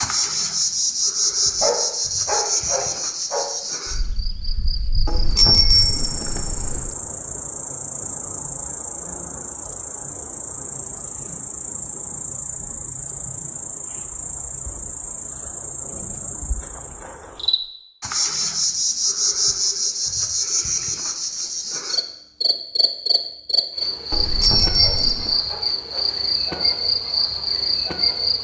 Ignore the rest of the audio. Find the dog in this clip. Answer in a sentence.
You can hear the dog from 1.4 to 3.5 s and from 24.6 to 26.6 s.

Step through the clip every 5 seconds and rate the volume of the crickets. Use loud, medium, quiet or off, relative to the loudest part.
loud, medium, medium, loud, loud, loud.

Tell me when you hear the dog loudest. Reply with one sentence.
The loudest moment of the dog is at 2 seconds.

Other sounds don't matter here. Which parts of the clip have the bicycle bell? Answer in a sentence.
The bicycle bell can be heard from 5.0 to 6.9 s and from 24.1 to 25.4 s.